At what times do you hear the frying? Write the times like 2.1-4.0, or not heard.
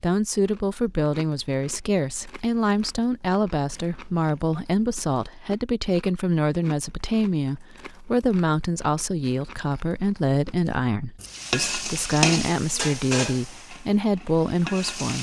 11.2-15.1.